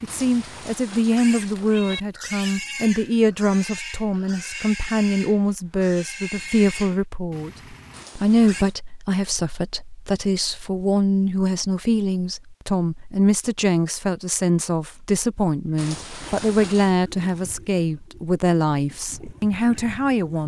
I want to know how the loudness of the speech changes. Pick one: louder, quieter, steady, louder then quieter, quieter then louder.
steady.